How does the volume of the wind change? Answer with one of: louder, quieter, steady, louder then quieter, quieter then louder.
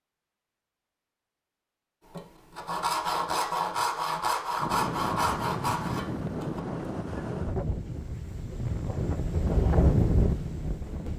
louder.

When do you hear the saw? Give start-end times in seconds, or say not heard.
2.0-6.6.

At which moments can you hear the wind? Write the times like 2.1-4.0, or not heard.
4.6-11.1.